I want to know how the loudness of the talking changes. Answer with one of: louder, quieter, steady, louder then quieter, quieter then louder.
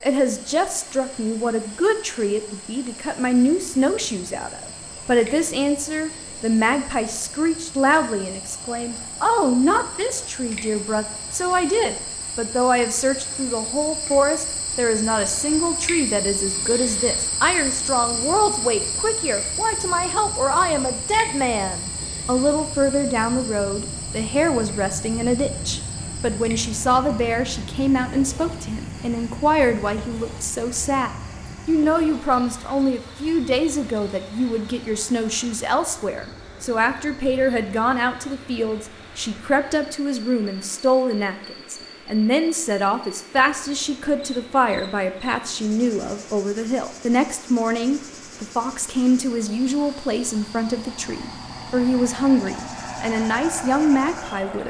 steady.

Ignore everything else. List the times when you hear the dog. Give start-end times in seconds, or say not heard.
not heard.